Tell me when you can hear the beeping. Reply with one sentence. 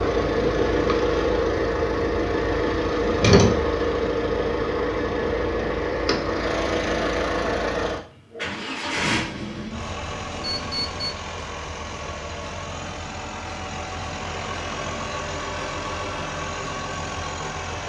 The beeping can be heard from 10.1 to 11.2 s.